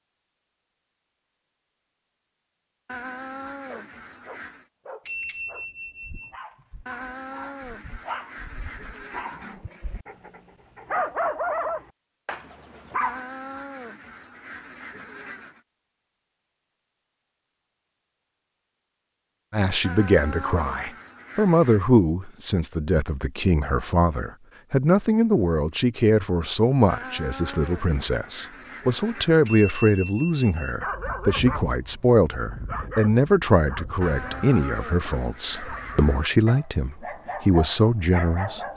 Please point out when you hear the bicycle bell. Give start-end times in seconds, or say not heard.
5.0-6.3, 29.4-30.8.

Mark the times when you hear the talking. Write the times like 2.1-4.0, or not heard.
19.5-38.7.